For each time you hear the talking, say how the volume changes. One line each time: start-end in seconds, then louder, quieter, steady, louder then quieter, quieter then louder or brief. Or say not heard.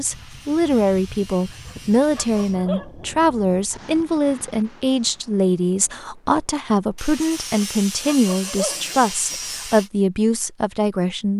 0.0-11.3 steady.